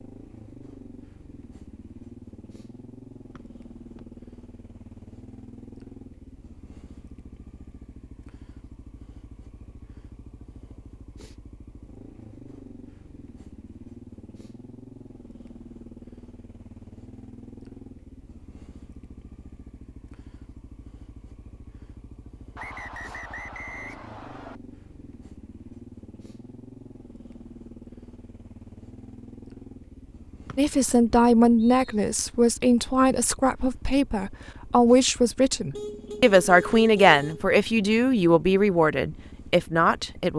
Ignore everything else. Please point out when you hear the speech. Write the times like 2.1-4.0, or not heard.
30.6-40.3.